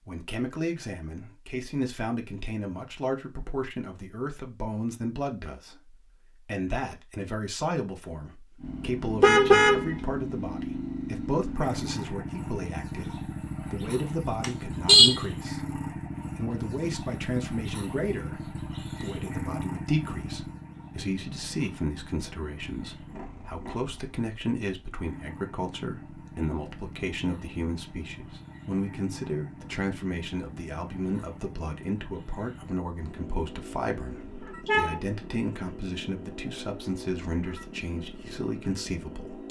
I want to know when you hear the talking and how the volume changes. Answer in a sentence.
You can hear the talking from 0.1 to 39.4 s, at a steady volume.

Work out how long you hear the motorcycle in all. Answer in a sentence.
The motorcycle can be heard for 31 seconds in total.